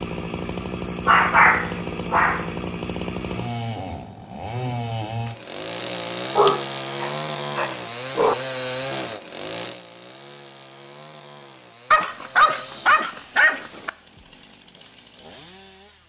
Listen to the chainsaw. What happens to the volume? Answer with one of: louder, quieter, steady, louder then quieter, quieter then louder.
quieter.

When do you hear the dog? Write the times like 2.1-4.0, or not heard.
1.1-2.5, 6.3-8.3, 11.9-13.9.